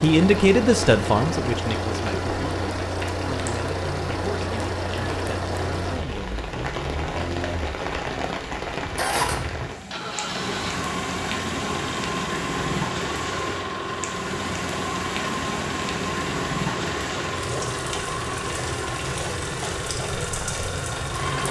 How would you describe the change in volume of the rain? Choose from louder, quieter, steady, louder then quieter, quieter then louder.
steady.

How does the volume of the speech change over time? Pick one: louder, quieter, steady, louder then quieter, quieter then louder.
quieter.